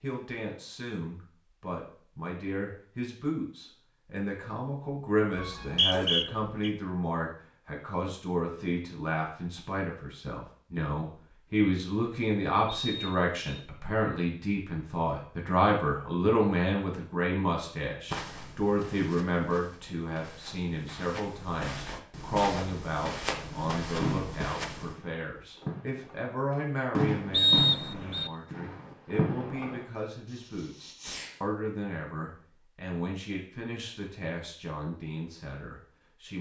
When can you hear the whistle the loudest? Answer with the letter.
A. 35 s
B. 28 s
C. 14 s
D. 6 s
B.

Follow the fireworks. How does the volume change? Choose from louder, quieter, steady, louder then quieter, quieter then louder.
louder then quieter.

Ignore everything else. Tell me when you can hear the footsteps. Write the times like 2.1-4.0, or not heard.
18.1-25.0.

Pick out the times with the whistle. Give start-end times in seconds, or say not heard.
5.3-6.7, 12.8-13.7, 27.3-28.3.